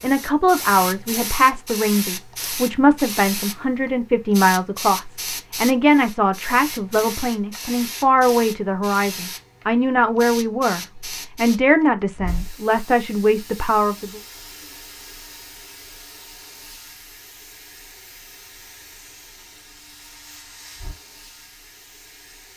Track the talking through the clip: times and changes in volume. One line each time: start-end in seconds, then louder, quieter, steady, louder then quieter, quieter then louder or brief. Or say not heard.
0.0-14.2 steady.